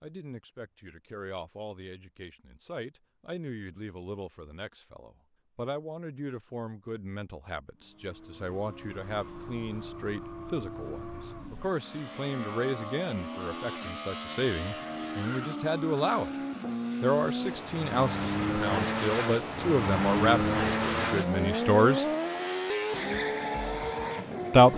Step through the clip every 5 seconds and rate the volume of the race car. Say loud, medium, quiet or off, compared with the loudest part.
off, quiet, medium, loud, loud.